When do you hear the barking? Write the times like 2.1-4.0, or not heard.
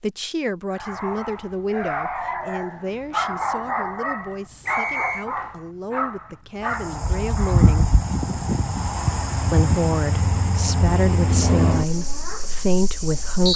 0.7-8.0.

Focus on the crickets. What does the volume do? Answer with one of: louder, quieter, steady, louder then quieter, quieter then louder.
quieter.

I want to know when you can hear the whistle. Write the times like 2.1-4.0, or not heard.
4.7-5.2.